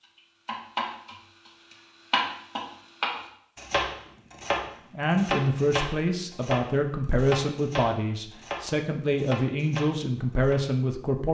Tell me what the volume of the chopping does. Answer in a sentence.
The volume of the chopping goes down.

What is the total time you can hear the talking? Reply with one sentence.
The talking can be heard for 6 seconds in total.